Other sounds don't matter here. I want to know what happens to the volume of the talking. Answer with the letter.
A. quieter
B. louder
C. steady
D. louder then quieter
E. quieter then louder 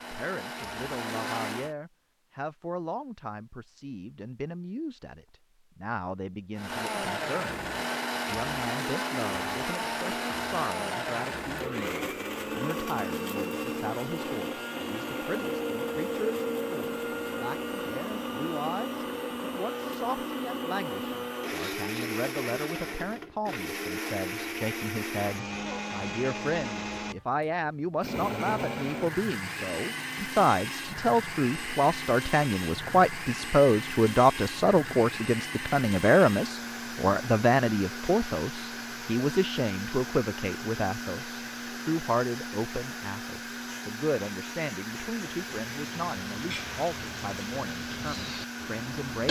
D.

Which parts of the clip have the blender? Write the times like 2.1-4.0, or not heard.
0.0-1.8, 6.5-49.2.